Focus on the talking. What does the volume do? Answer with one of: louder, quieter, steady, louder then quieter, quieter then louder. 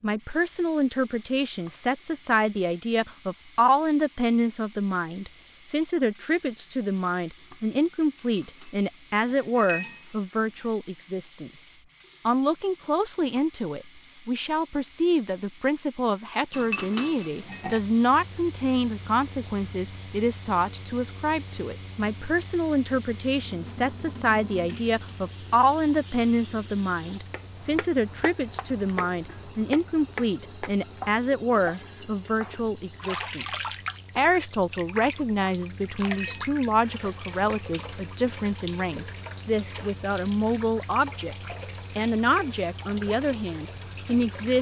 steady.